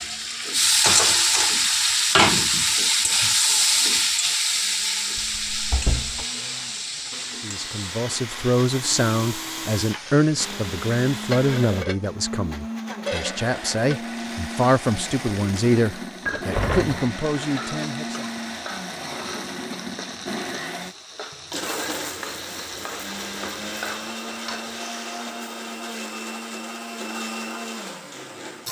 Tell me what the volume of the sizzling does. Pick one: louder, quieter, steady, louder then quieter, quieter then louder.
quieter.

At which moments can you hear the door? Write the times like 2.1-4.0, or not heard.
5.2-6.2, 16.2-17.1.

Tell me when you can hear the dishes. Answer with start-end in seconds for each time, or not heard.
not heard.